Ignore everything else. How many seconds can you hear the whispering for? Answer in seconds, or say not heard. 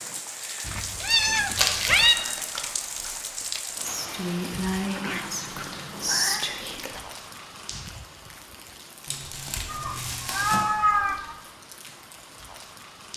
5 s.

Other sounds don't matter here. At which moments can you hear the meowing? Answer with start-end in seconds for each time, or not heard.
0.7-2.1, 4.8-6.5, 9.7-11.3.